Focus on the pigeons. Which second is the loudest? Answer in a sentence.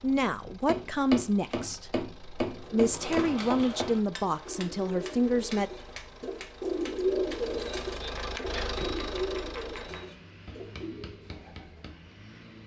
The loudest moment of the pigeons is at 7 seconds.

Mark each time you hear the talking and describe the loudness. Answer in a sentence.
The talking can be heard from 0.0 to 5.7 s, getting quieter then louder.